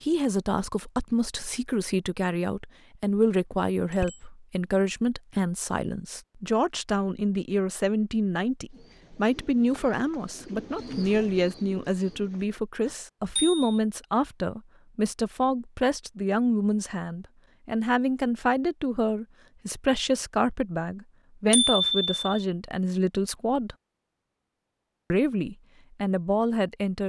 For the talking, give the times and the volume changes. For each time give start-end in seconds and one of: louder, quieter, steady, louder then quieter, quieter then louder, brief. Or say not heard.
0.0-23.8 steady
25.1-27.0 brief.